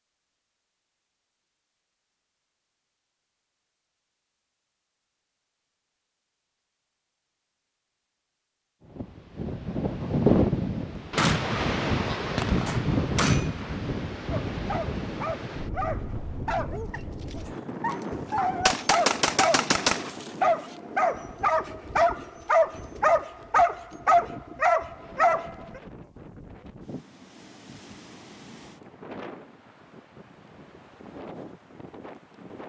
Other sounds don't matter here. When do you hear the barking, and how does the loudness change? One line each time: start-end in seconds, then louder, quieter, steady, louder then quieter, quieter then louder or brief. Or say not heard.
14.3-25.8 louder.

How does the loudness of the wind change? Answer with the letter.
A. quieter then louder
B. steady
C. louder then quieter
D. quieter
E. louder
D.